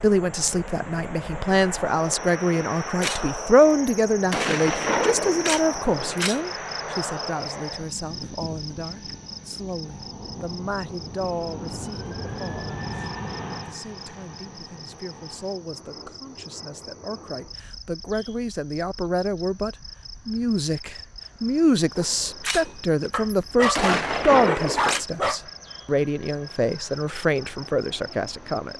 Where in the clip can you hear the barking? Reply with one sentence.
The barking can be heard from 23.1 to 25.4 s.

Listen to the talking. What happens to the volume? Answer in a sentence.
The volume of the talking goes down, then up.